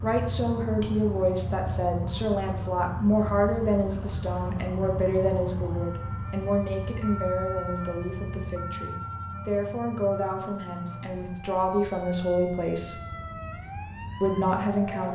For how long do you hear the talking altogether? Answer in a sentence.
The talking can be heard for 14 seconds in total.